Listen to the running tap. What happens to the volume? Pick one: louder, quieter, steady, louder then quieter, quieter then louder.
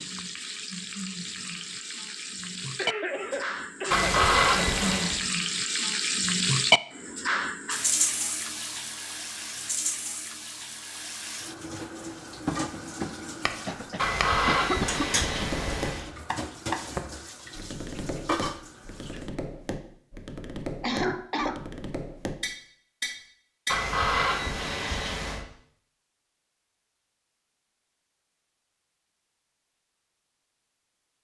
louder then quieter.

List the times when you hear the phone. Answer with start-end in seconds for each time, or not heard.
3.9-5.2, 13.9-16.1, 23.6-25.4.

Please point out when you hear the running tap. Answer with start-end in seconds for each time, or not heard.
0.0-19.3.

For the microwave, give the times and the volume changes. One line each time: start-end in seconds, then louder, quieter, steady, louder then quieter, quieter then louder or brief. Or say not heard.
not heard.